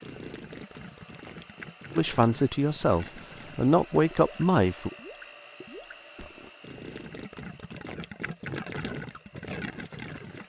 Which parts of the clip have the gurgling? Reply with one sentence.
The gurgling can be heard from 0.0 to 10.4 s.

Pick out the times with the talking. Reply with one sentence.
You can hear the talking from 1.9 to 4.9 s.